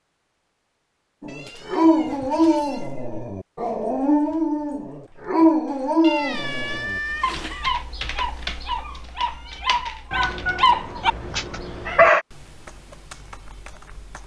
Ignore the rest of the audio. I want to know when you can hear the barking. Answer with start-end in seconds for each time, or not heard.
1.2-12.2.